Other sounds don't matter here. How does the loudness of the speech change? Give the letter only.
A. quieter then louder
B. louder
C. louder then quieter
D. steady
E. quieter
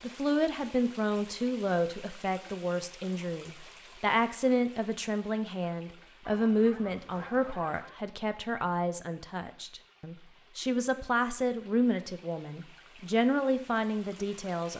D.